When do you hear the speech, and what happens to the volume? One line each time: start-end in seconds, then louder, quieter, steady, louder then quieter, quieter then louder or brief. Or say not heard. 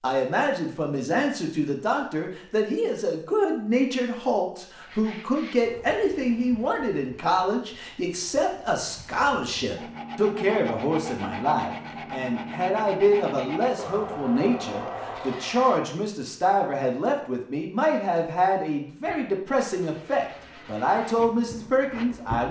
0.0-22.4 steady.